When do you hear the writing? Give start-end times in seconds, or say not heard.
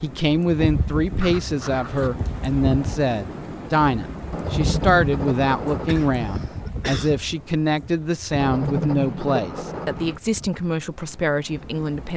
1.1-2.1, 4.3-6.3, 8.4-10.2.